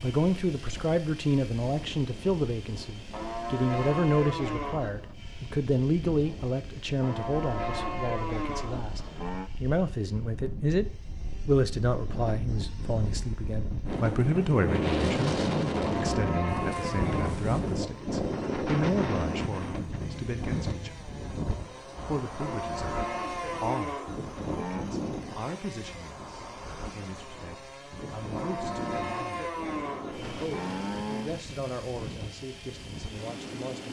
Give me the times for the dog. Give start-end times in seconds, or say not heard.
not heard.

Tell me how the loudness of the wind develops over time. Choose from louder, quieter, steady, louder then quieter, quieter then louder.
louder then quieter.